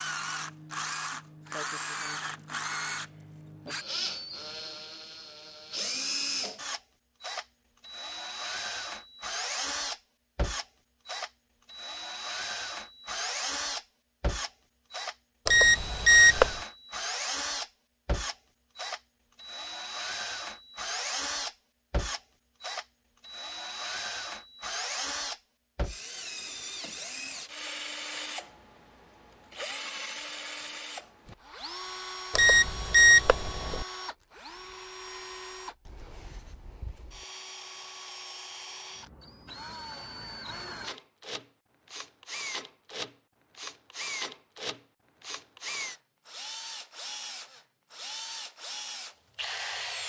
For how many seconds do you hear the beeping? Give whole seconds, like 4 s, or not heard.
3 s.